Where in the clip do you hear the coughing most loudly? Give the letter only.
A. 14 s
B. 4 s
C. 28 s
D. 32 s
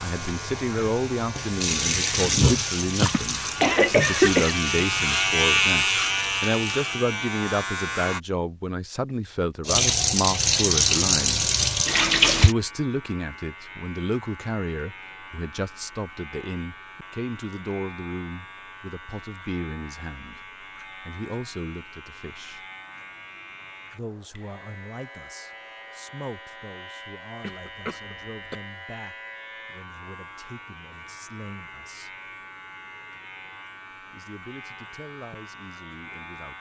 B.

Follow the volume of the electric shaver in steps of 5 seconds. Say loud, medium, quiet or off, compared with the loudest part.
medium, loud, quiet, quiet, quiet, quiet, quiet, quiet.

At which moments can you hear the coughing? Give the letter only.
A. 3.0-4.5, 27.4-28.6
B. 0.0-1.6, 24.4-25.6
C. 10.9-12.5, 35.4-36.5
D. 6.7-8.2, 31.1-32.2
A.